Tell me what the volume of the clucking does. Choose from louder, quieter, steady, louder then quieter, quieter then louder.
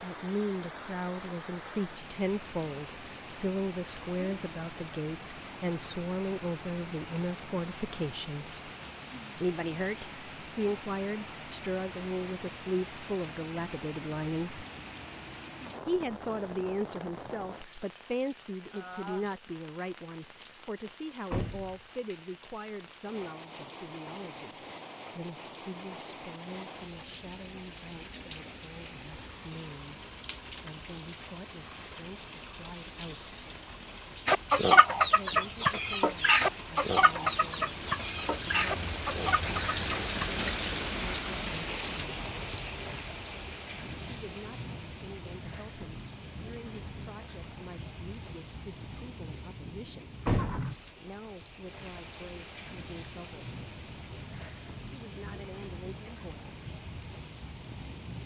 quieter.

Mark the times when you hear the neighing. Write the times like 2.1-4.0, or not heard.
50.4-50.8.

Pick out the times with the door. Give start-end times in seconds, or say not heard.
21.3-21.8, 50.2-50.7.